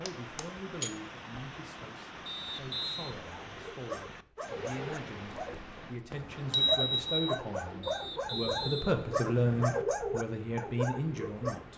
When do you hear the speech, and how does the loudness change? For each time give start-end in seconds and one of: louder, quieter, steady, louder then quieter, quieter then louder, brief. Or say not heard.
0.0-11.7 louder.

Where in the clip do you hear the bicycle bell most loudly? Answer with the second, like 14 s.
7 s.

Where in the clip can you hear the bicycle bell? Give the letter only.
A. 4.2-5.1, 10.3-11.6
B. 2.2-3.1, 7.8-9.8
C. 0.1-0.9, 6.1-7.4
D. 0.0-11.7
C.